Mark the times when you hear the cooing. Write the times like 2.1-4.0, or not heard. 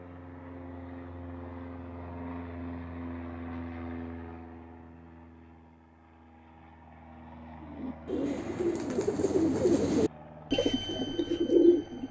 7.6-12.0.